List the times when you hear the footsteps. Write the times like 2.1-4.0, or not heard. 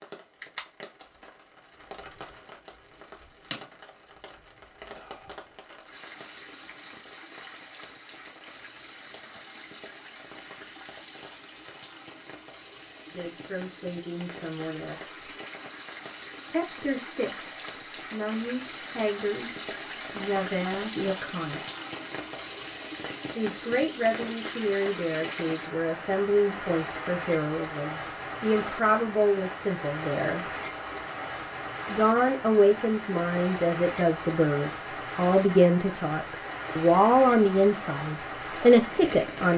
not heard.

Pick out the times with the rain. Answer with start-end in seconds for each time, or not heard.
0.0-39.5.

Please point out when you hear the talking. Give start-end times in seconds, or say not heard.
13.1-15.2, 16.5-19.5, 20.1-21.6, 23.4-30.5, 31.9-39.5.